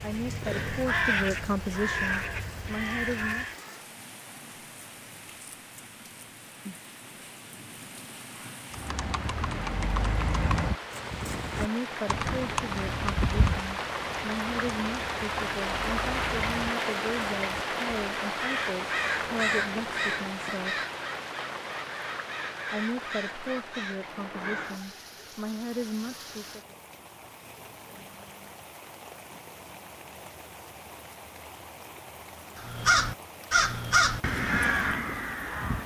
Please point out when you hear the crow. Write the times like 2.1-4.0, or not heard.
0.0-3.6, 18.2-24.8, 32.5-35.8.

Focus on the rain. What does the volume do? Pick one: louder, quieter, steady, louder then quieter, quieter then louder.
louder then quieter.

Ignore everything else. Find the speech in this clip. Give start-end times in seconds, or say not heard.
0.0-3.5, 11.6-20.9, 22.7-26.8.